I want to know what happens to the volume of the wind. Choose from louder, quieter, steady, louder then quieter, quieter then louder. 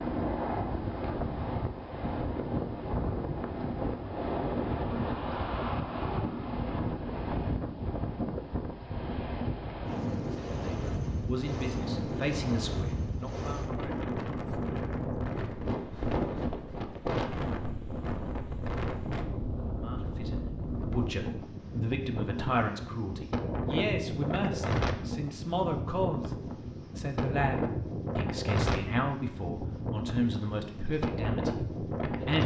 steady.